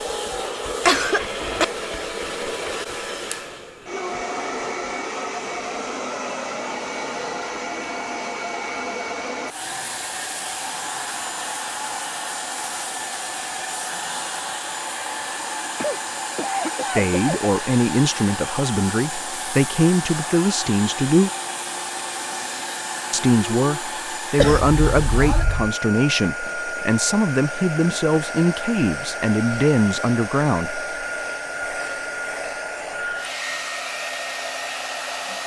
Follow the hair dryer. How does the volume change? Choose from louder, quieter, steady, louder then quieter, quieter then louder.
steady.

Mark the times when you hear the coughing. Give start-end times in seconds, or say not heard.
0.8-1.6, 15.8-17.4, 24.4-25.7.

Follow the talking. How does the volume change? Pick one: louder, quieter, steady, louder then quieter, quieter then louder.
steady.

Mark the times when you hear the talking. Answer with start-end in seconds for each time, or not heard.
16.8-21.3, 23.1-30.8.